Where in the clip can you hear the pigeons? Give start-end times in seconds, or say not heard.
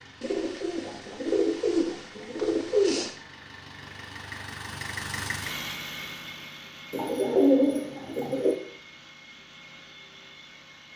0.2-3.1, 6.9-8.6.